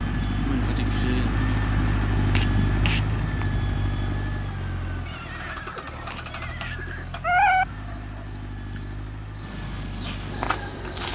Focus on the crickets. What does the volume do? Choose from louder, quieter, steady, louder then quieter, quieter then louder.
louder.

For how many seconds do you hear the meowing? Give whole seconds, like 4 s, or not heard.
3 s.